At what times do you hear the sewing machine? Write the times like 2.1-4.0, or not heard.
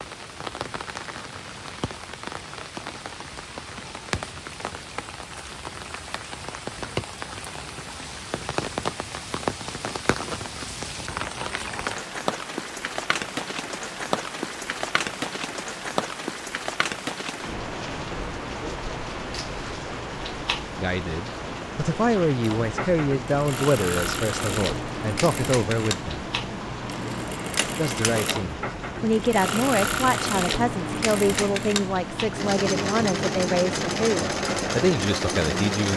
22.4-35.9.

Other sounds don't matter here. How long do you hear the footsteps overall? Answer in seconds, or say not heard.
not heard.